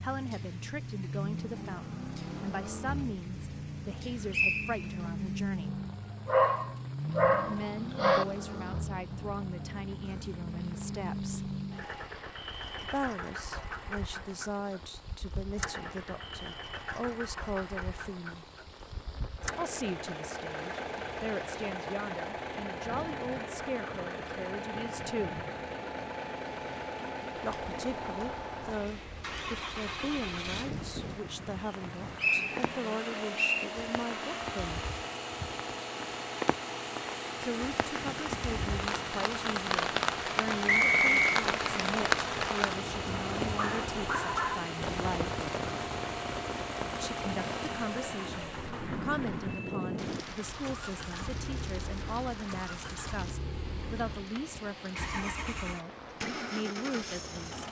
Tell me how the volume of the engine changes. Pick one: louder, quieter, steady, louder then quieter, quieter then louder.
steady.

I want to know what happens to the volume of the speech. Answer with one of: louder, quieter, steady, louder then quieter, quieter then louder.
steady.